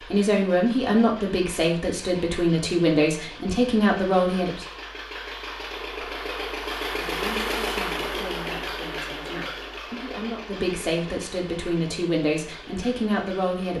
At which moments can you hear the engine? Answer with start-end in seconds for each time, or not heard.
0.0-13.7.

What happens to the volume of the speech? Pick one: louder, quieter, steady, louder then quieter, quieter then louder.
quieter then louder.